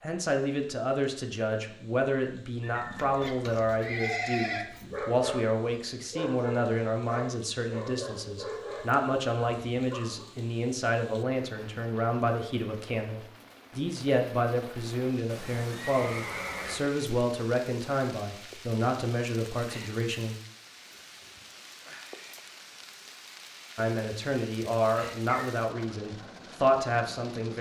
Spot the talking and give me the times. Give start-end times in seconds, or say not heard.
0.0-20.4, 23.8-27.5.